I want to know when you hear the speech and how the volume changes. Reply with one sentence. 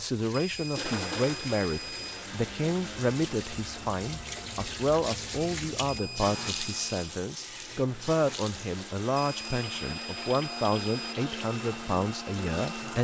You can hear the speech from 0.0 to 13.0 s, at a steady volume.